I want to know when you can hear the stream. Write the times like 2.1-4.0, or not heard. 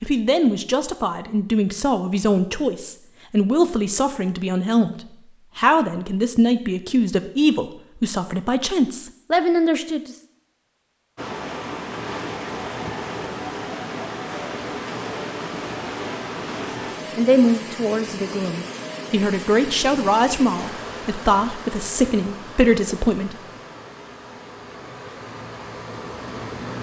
11.2-26.7.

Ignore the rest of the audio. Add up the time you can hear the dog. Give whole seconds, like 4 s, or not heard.
not heard.